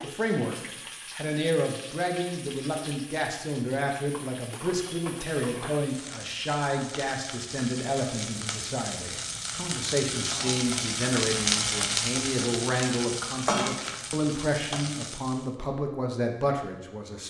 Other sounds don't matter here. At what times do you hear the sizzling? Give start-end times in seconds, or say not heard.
0.0-15.6.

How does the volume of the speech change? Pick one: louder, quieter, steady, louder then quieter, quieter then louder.
steady.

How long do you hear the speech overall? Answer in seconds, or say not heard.
17 s.